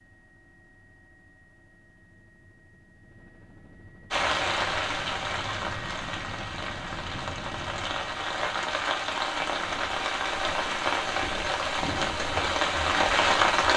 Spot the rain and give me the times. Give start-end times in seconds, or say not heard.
4.1-13.7.